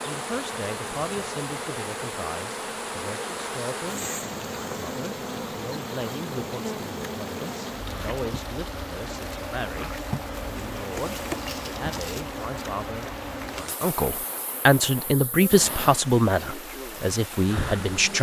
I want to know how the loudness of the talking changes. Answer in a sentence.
The volume of the talking goes up.